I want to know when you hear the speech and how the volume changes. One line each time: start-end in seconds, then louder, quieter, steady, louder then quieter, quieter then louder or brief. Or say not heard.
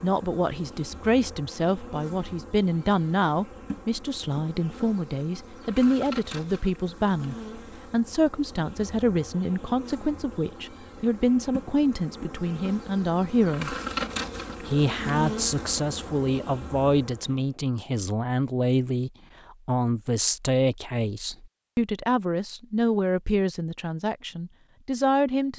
0.0-13.8 steady
14.6-25.5 steady.